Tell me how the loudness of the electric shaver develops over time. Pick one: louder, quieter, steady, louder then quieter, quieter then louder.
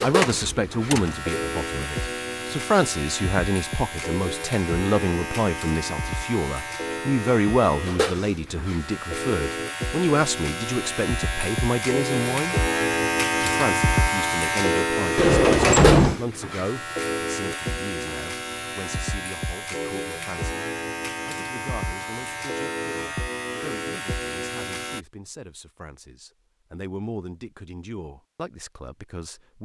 louder then quieter.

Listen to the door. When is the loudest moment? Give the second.
16 s.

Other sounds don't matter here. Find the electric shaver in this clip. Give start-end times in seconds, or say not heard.
0.0-25.1.